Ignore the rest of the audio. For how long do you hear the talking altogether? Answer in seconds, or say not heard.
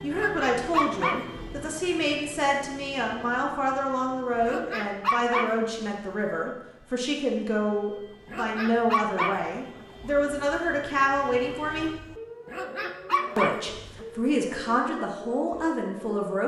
15 s.